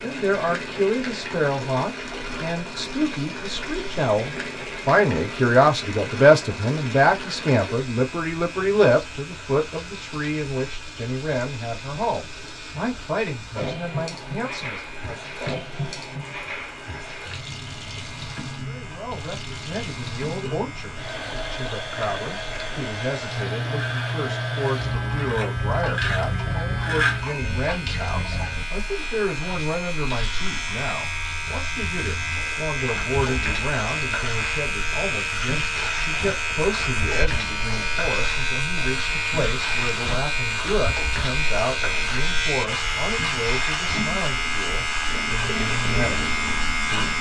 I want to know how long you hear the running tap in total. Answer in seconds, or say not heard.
47 s.